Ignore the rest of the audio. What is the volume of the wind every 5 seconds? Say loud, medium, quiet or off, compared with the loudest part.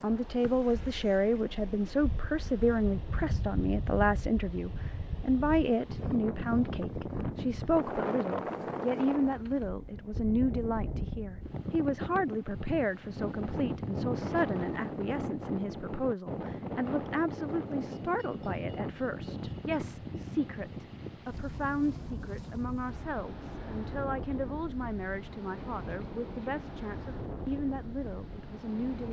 medium, loud, loud, loud, medium, medium.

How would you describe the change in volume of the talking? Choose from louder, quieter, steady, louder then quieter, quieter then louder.
quieter.